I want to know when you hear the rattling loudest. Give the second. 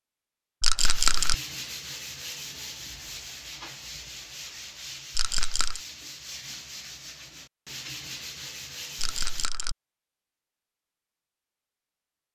1 s.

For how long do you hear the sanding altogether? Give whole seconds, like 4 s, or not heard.
9 s.